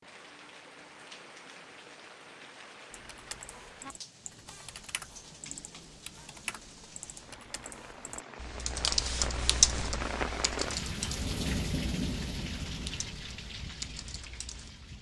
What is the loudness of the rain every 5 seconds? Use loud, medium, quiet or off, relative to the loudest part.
quiet, medium, loud.